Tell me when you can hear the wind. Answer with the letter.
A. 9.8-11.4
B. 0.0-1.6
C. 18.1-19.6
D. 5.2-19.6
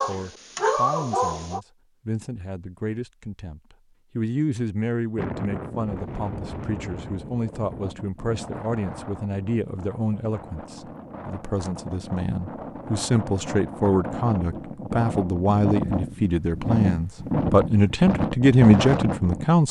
D.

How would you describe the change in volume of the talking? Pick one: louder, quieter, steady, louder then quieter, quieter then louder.
louder.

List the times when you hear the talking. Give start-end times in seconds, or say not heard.
0.1-19.6.